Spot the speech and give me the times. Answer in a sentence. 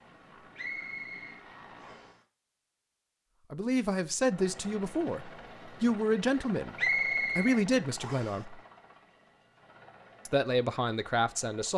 The speech can be heard from 3.5 to 6.8 s, from 7.3 to 8.6 s and from 10.2 to 11.7 s.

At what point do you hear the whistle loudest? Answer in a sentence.
The volume of the whistle peaks at 7 seconds.